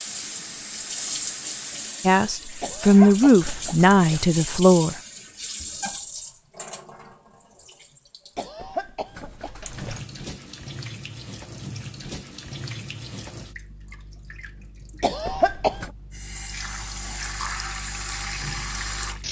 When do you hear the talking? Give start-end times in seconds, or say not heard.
2.0-5.0.